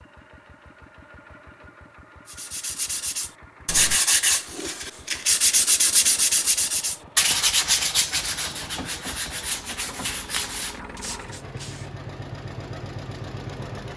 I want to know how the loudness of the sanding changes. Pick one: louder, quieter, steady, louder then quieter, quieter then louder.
quieter.